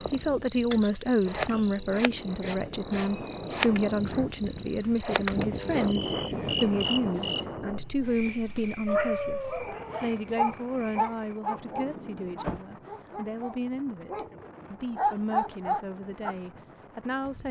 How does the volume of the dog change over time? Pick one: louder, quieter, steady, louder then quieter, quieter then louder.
quieter then louder.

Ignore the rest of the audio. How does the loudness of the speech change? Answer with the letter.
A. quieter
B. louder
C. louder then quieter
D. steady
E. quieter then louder
A.